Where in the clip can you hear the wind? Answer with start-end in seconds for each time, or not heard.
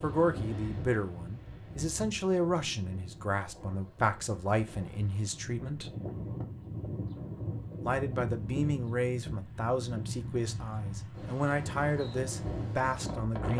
0.0-13.5.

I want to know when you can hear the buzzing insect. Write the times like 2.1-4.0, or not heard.
not heard.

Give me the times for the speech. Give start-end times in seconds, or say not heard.
0.0-5.9, 7.8-13.5.